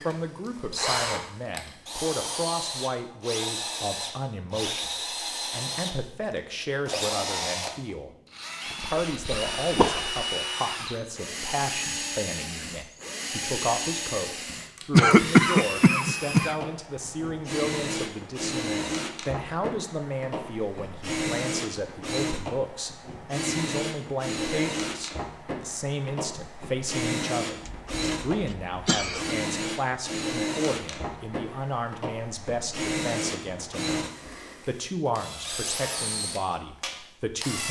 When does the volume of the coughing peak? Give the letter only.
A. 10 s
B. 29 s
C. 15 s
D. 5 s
C.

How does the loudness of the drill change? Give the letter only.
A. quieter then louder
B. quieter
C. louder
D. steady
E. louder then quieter
D.